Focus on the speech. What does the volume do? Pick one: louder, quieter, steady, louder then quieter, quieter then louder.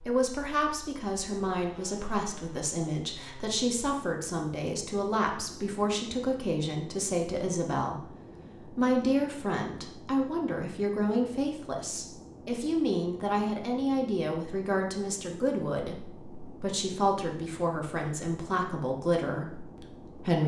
steady.